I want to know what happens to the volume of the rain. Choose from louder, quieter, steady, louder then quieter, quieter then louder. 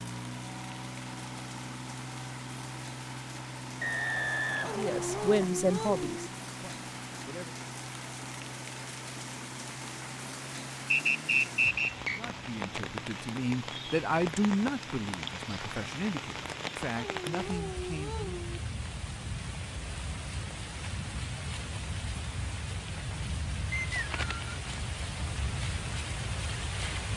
louder.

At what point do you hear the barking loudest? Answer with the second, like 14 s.
5 s.